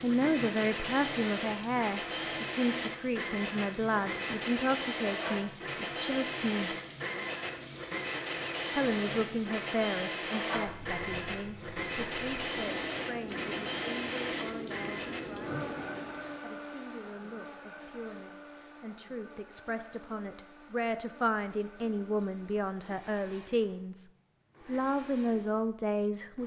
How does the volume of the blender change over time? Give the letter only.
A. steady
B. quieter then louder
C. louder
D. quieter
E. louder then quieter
D.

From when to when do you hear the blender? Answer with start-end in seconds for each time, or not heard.
0.0-26.4.